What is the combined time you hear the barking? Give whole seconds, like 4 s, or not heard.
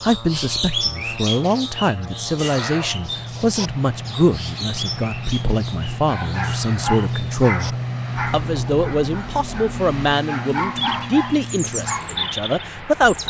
6 s.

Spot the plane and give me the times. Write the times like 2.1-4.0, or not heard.
0.0-13.2.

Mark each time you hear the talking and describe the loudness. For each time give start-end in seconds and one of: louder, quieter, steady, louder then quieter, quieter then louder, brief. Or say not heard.
0.0-13.2 steady.